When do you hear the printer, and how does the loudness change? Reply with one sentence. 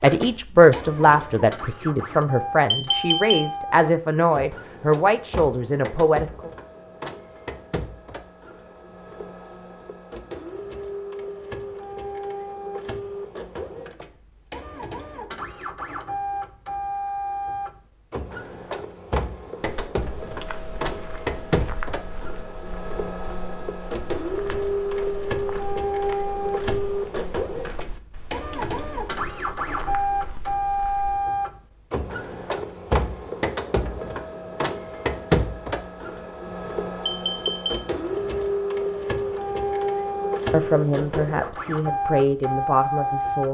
You can hear the printer from 0.0 to 43.5 s, getting louder.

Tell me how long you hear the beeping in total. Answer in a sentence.
The beeping can be heard for 2 seconds in total.